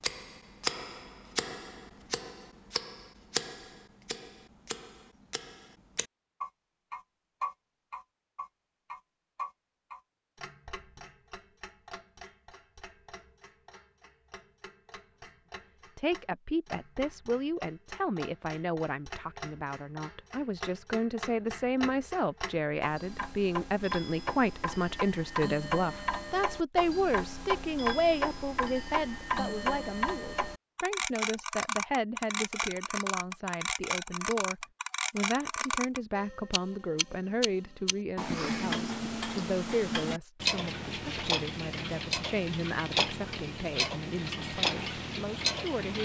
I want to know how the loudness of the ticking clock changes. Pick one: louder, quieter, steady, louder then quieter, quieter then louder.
quieter then louder.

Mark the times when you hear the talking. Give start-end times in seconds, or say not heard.
15.9-46.0.